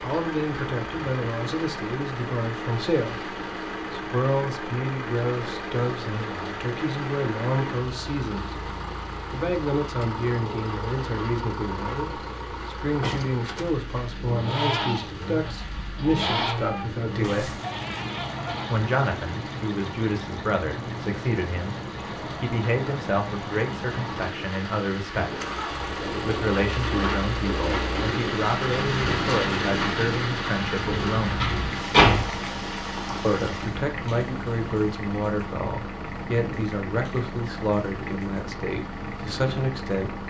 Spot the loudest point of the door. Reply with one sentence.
The loudest moment of the door is at 32 seconds.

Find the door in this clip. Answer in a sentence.
You can hear the door from 30.9 to 32.4 s.